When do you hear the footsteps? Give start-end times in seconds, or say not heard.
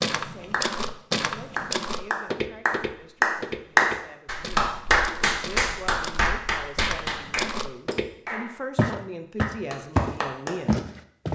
0.0-8.1, 8.8-11.2.